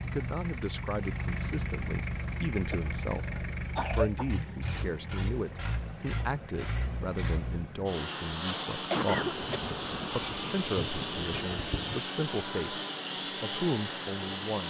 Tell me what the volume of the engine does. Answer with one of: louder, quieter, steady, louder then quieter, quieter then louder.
steady.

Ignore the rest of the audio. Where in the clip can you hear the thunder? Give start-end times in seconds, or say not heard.
9.2-12.0.